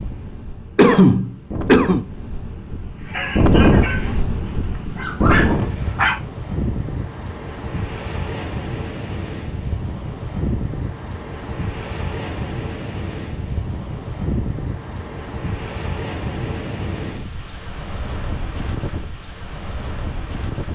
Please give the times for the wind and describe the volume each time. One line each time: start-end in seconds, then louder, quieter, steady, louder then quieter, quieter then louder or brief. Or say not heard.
0.0-20.7 quieter.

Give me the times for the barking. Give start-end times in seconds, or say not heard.
3.0-6.2.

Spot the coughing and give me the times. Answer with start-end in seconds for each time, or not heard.
0.8-2.0.